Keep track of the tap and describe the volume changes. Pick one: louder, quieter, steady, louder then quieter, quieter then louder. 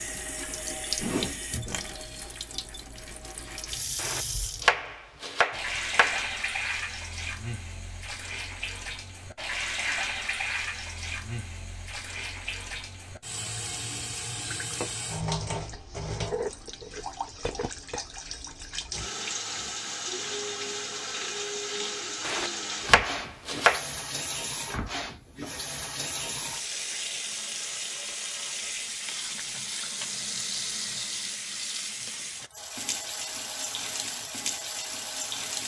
steady.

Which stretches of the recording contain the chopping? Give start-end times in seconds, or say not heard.
4.0-6.2, 22.2-23.9.